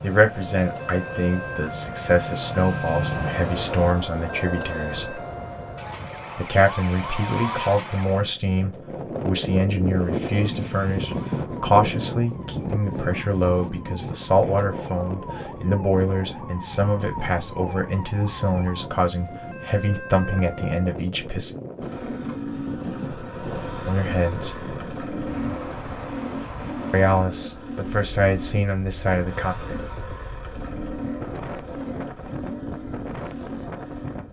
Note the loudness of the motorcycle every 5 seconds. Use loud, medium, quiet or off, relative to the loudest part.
loud, off, off, off, loud, loud, loud.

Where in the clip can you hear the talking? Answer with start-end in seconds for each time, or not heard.
0.0-5.2, 6.3-21.6, 23.9-24.6, 26.9-29.6.